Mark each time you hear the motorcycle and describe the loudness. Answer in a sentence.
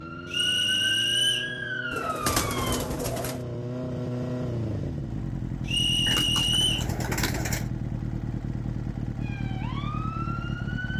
The motorcycle can be heard from 0.0 to 10.9 s, getting louder.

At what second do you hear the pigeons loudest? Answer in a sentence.
The loudest moment of the pigeons is at 2 seconds.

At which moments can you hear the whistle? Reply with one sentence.
You can hear the whistle from 0.3 to 1.6 s and from 5.7 to 6.8 s.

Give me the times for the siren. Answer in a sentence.
You can hear the siren from 0.0 to 2.9 s and from 9.2 to 10.9 s.